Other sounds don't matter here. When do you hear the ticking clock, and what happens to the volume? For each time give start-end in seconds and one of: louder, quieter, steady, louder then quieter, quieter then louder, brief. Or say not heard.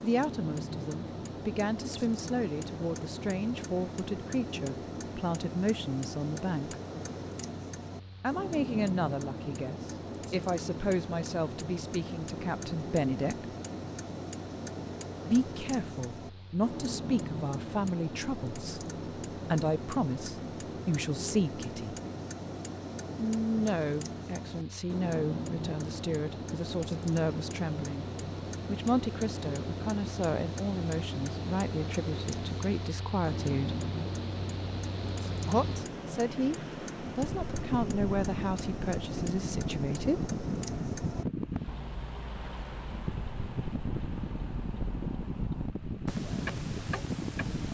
0.0-47.6 steady.